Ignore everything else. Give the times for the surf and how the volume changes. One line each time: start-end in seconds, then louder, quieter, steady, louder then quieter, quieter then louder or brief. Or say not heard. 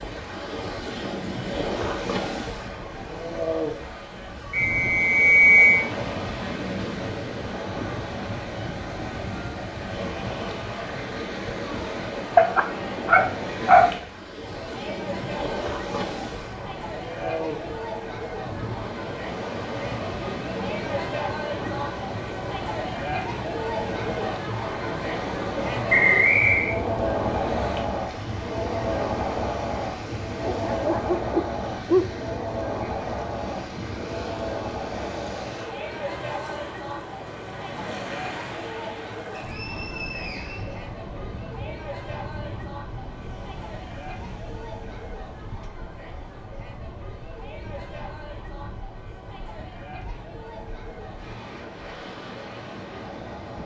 0.0-53.6 quieter.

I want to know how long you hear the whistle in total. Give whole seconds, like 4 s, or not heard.
4 s.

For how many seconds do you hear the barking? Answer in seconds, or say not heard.
3 s.